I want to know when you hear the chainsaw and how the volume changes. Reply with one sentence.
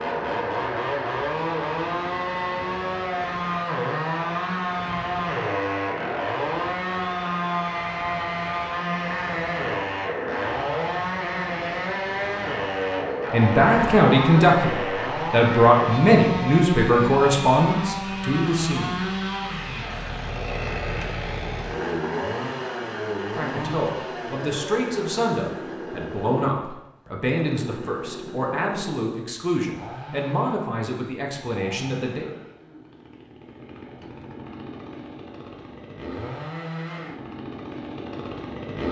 You can hear the chainsaw from 0.0 to 38.8 s, getting quieter.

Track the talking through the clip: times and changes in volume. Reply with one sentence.
The talking can be heard from 13.3 to 19.0 s, getting quieter; and from 23.3 to 32.4 s, at a steady volume.